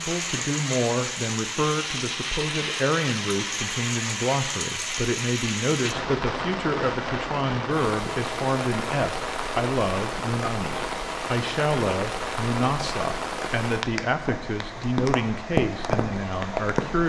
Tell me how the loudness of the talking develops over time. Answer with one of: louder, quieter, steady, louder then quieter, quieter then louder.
steady.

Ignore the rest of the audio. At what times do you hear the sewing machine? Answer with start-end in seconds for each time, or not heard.
not heard.